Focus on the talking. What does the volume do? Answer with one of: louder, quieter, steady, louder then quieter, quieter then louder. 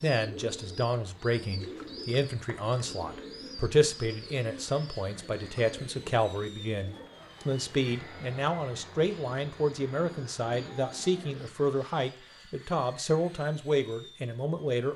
steady.